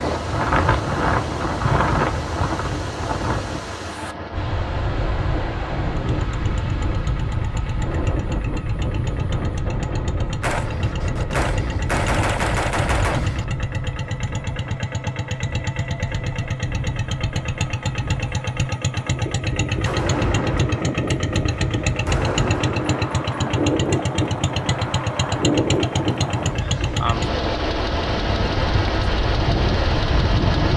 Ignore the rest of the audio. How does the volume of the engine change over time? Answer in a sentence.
The volume of the engine goes up.